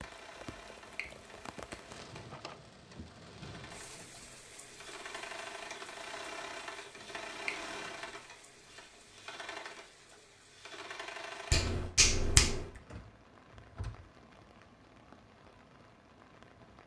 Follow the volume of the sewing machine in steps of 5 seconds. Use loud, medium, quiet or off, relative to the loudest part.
medium, loud, loud, off.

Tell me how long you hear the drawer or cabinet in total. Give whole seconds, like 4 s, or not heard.
2 s.